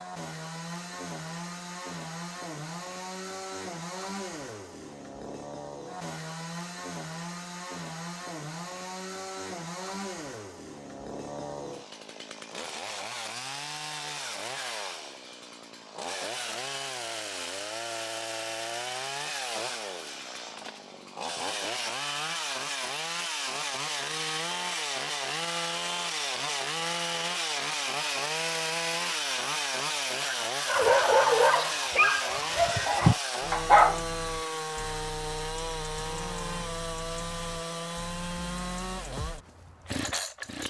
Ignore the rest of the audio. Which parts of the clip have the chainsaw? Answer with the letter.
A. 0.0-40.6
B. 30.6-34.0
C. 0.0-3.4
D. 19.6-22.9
A.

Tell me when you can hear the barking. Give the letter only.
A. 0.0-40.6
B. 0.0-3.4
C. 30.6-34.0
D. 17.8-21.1
C.